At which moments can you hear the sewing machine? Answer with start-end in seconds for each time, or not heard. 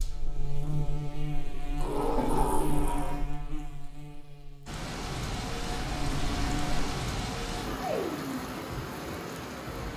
not heard.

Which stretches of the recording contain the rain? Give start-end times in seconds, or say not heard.
4.7-9.9.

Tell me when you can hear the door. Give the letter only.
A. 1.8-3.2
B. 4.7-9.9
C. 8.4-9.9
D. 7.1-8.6
A.